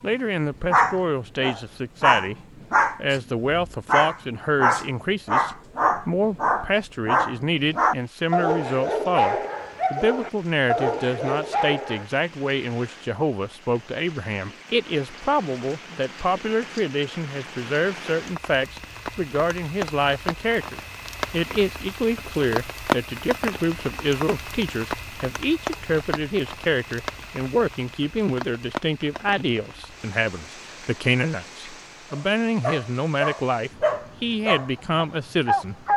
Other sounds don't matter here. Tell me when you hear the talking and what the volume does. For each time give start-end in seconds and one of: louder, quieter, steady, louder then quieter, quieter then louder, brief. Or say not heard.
0.0-2.4 brief
3.0-35.8 steady.